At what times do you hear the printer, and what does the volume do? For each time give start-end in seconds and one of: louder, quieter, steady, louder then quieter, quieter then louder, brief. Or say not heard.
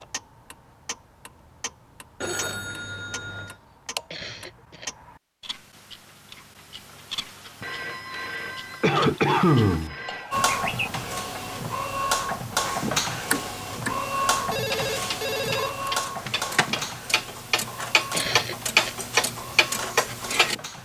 10.3-20.8 quieter.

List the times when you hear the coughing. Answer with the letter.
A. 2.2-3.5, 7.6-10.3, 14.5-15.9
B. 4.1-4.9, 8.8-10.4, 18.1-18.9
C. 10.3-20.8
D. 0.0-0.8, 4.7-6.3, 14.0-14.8
B.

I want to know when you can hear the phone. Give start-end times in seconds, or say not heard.
2.2-3.5, 7.6-10.3, 14.5-15.9.